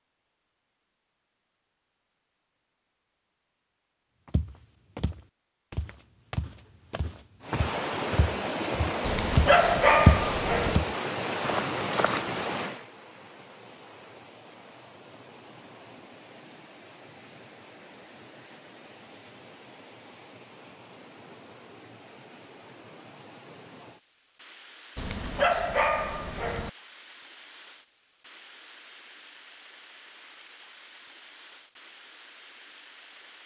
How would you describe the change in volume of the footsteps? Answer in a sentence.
The loudness of the footsteps goes up, then down.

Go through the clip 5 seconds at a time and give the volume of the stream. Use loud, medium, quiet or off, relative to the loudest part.
off, loud, loud, quiet, quiet, quiet, quiet.